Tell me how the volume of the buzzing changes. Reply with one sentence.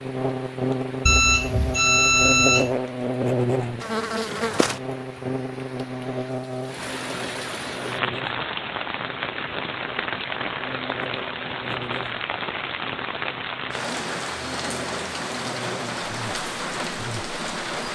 The volume of the buzzing goes down.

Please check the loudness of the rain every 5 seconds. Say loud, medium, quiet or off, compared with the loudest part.
quiet, loud, loud, loud.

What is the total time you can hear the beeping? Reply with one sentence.
The beeping can be heard for 2 seconds in total.